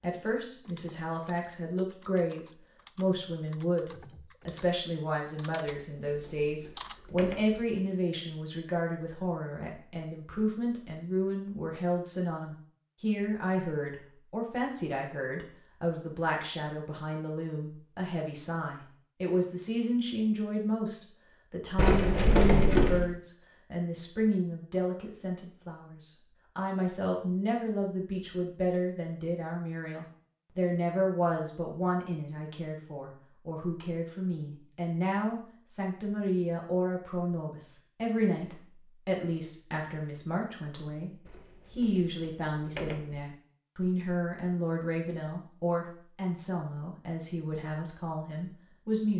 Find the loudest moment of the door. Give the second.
23 s.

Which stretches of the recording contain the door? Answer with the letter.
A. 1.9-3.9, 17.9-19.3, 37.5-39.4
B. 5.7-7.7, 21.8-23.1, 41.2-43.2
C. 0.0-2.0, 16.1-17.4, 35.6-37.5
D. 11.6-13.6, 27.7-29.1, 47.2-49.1
B.